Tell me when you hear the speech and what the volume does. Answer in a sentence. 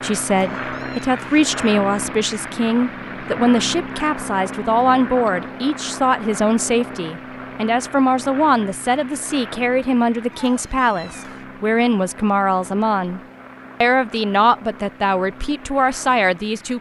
You can hear the speech from 0.0 to 13.2 s, at a steady volume; and briefly from 13.8 to 16.7 s.